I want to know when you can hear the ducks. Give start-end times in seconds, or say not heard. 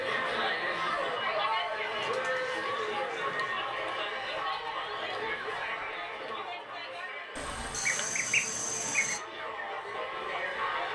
2.0-3.6, 7.3-9.2.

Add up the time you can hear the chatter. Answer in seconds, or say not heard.
11 s.